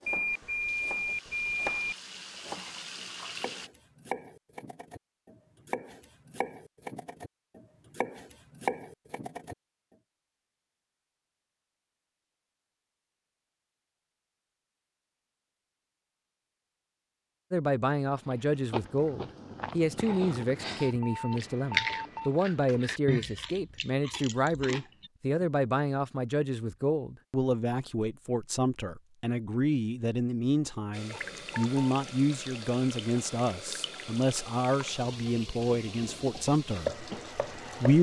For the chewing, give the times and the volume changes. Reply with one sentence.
The chewing can be heard from 18.1 to 25.4 s, getting louder then quieter.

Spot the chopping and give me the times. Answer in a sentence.
You can hear the chopping from 0.0 to 9.6 s and from 36.5 to 37.9 s.